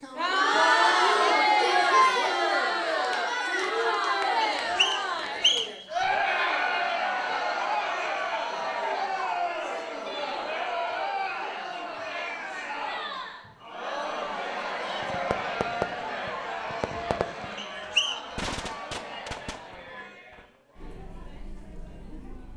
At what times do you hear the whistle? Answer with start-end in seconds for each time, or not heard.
4.4-5.8, 17.6-18.3.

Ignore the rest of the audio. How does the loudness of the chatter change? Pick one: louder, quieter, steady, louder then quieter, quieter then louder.
quieter.